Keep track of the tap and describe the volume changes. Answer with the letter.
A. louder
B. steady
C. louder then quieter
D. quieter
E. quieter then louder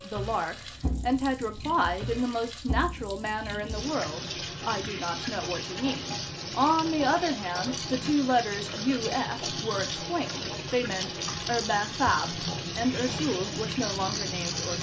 A.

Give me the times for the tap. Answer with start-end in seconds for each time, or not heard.
0.0-14.7.